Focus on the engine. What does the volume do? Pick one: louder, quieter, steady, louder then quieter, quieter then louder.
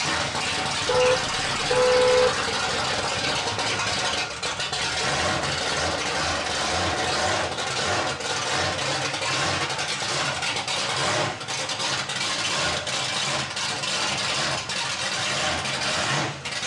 steady.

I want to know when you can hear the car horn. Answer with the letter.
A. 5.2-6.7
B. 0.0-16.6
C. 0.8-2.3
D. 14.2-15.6
C.